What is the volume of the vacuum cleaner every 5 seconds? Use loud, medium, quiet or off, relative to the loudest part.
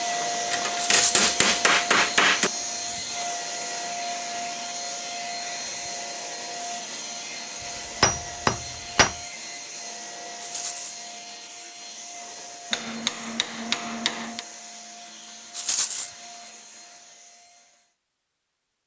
loud, medium, medium, quiet.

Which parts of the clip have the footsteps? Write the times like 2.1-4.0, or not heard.
not heard.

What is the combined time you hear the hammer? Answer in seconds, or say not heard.
5 s.